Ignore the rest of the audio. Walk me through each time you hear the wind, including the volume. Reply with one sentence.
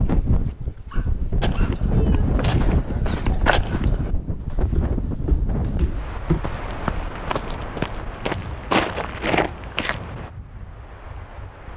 You can hear the wind from 0.0 to 11.7 s, getting quieter.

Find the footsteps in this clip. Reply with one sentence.
You can hear the footsteps from 1.4 to 10.3 s.